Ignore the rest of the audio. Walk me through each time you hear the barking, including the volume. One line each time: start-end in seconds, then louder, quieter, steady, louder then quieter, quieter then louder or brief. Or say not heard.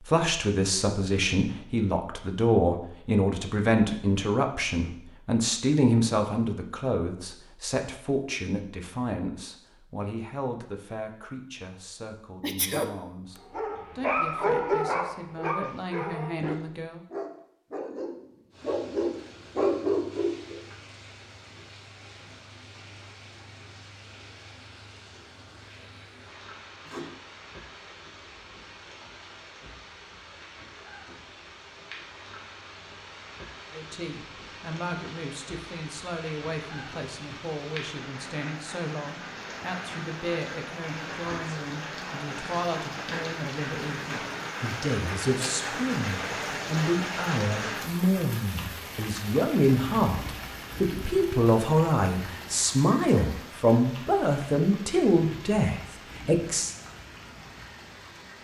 13.5-20.6 quieter then louder.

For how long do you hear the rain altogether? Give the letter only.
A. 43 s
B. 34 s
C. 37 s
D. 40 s
D.